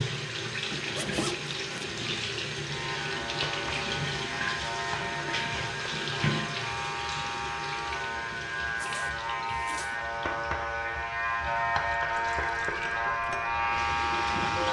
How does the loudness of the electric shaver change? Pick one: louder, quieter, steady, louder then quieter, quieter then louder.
louder.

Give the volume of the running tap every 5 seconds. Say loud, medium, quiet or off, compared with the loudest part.
loud, loud, medium.